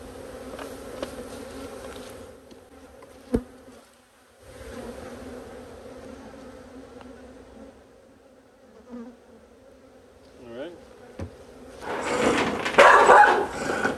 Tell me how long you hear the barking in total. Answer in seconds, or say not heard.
2 s.